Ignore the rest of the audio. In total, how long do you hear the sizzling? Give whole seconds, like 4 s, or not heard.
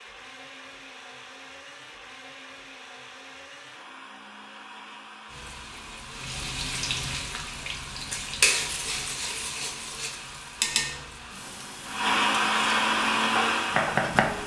9 s.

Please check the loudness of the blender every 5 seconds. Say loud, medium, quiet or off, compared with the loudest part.
quiet, quiet, loud.